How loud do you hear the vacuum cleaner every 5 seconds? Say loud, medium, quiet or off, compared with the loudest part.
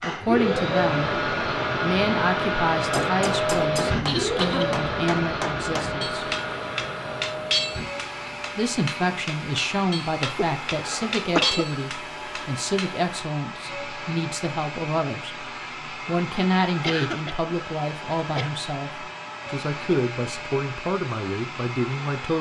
loud, medium, medium, medium, medium.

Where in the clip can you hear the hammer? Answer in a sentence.
The hammer can be heard from 2.7 to 13.1 s.